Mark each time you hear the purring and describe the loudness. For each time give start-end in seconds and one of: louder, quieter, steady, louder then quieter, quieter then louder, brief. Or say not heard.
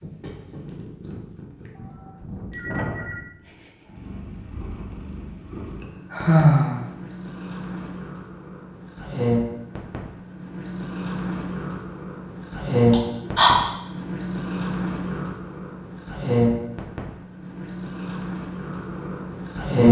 0.0-19.8 louder.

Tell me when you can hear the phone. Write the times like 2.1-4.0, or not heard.
1.8-3.2.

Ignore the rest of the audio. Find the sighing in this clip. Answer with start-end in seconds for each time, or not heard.
6.1-6.8, 12.9-13.6.